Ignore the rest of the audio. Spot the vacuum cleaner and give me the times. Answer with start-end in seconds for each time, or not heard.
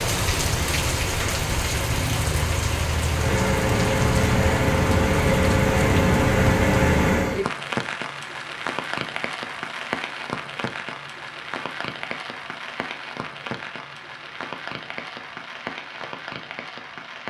3.0-7.5.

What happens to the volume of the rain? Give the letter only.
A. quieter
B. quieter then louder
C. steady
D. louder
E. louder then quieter
A.